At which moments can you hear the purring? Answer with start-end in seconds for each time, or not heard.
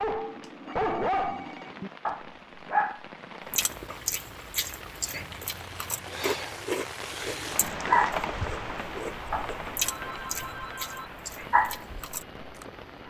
not heard.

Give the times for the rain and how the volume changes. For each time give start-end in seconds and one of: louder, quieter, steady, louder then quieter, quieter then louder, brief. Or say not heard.
0.0-13.0 louder then quieter.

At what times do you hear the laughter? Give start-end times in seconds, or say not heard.
not heard.